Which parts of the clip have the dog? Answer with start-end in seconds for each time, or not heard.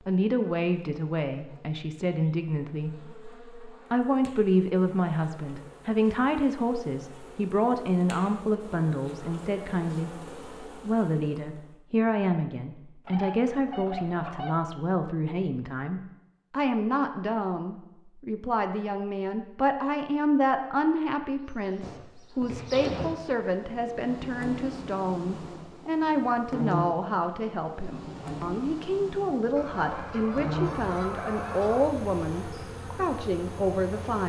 not heard.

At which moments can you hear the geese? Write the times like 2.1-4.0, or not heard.
13.1-14.6, 29.6-31.9.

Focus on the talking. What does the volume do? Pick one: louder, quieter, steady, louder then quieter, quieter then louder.
steady.